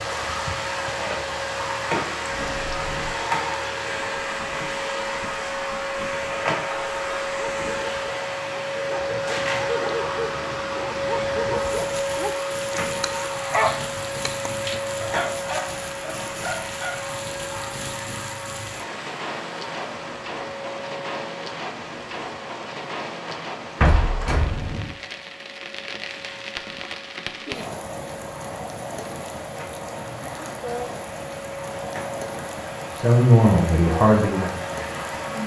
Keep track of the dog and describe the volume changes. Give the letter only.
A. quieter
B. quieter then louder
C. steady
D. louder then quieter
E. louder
D.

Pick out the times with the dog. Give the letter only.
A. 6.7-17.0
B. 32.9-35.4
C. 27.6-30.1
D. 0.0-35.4
A.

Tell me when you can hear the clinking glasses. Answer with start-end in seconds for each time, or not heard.
not heard.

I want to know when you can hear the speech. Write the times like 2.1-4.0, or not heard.
32.9-35.4.